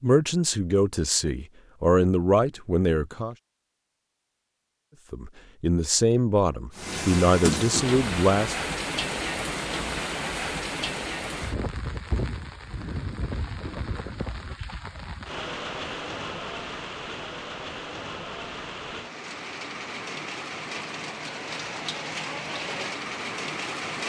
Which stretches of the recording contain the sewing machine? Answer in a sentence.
The sewing machine can't be heard in this clip.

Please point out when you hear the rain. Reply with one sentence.
You can hear the rain from 6.7 to 24.0 s.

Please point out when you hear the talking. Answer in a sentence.
The talking can be heard from 0.0 to 3.4 s and from 5.1 to 8.6 s.